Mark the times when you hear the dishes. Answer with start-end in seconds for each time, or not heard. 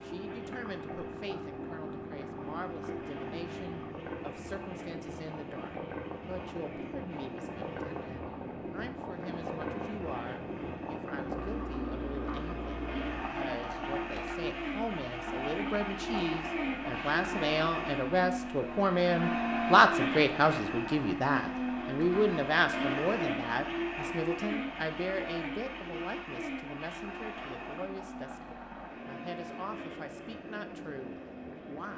not heard.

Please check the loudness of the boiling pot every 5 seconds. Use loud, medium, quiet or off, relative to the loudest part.
loud, loud, loud, loud, medium, medium, medium.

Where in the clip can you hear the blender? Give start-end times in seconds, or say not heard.
0.0-31.9.